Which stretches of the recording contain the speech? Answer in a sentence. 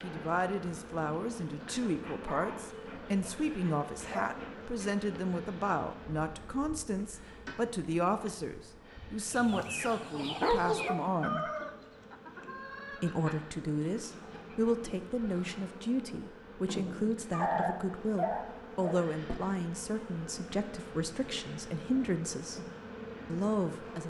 You can hear the speech from 0.0 to 11.5 s, from 13.0 to 22.6 s and from 23.2 to 24.0 s.